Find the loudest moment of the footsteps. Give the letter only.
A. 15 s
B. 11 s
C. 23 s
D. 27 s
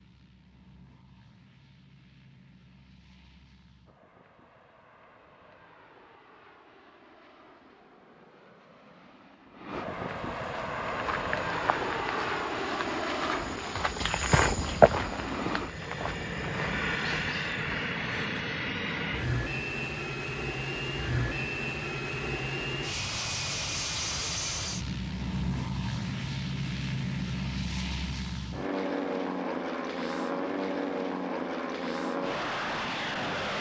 A.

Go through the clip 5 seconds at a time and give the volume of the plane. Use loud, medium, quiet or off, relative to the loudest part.
quiet, quiet, loud, loud, loud, loud, loud.